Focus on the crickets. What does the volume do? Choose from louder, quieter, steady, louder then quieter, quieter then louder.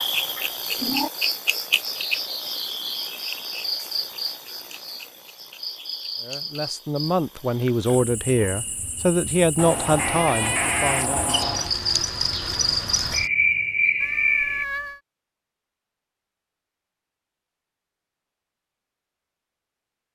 quieter then louder.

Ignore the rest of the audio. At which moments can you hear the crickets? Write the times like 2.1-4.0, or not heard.
0.0-14.7.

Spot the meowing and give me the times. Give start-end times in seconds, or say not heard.
0.3-1.1, 9.6-11.7, 14.0-15.0.